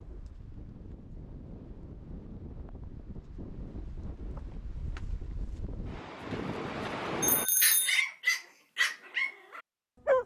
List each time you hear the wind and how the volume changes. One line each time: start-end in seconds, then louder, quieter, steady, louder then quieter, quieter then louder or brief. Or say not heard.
0.0-7.5 louder.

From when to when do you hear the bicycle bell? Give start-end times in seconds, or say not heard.
7.2-8.1.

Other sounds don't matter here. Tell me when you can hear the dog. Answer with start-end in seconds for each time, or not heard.
7.6-10.2.